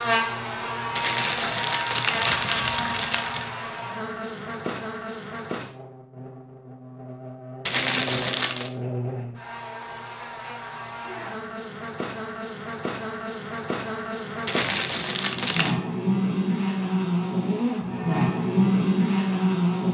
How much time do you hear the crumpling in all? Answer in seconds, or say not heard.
5 s.